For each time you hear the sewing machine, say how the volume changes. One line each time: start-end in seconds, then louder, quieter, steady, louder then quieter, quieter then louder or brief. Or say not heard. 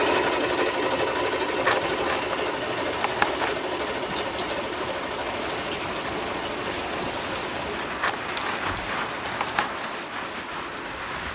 0.0-11.2 quieter.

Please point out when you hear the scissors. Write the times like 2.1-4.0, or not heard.
1.6-3.6, 8.0-9.8.